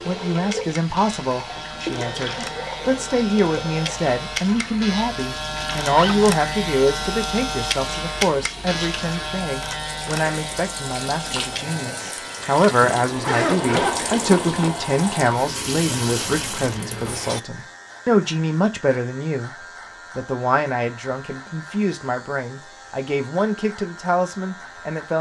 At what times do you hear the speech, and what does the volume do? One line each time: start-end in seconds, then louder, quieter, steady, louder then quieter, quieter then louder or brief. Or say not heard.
0.1-25.1 steady.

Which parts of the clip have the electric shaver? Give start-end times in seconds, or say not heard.
0.0-25.1.